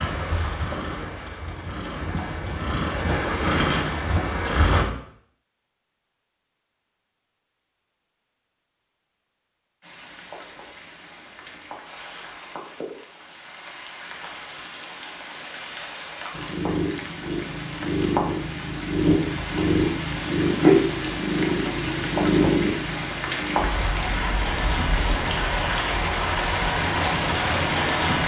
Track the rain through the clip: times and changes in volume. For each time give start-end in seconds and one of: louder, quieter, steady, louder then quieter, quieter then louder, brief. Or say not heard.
9.8-28.2 louder.